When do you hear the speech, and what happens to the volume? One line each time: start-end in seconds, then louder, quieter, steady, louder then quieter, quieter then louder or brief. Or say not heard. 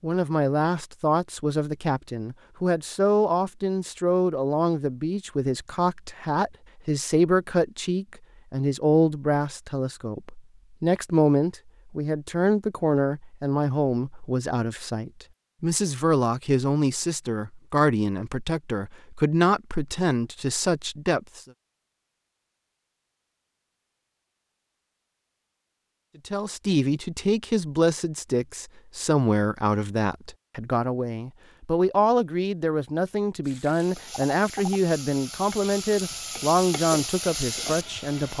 0.0-21.4 steady
26.2-38.3 steady.